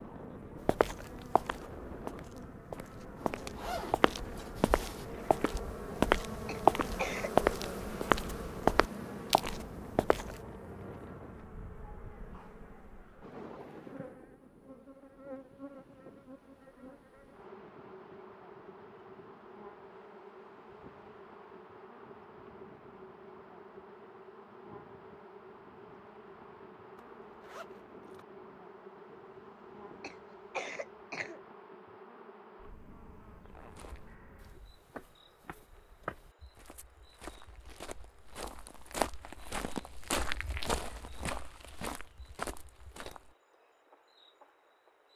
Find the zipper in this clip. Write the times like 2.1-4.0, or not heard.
3.1-5.0, 26.9-28.2, 33.5-34.1.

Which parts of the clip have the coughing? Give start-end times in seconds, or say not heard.
6.5-7.3, 30.0-31.4.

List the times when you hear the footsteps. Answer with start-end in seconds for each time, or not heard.
0.7-10.4, 33.5-43.4.